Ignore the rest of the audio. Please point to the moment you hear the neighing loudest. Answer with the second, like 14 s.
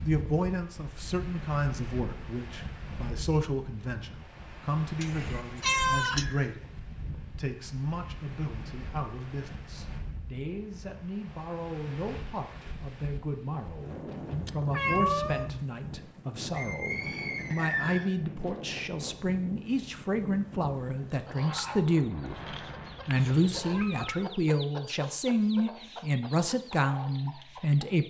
18 s.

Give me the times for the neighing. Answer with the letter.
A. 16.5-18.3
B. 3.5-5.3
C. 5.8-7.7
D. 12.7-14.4
A.